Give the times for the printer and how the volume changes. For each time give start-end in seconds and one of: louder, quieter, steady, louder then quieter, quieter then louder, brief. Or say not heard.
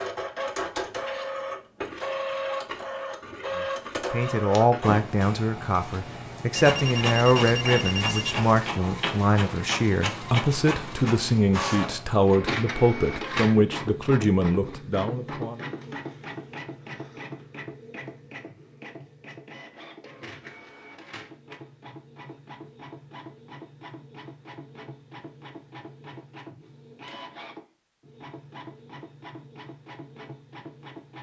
0.0-31.1 quieter.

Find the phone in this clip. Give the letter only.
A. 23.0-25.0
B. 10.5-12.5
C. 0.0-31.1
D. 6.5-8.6
D.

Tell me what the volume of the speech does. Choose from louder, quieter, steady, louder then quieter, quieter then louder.
steady.